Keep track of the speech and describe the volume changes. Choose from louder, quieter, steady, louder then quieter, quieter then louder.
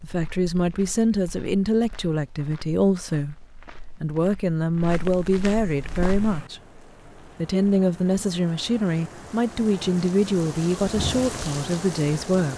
steady.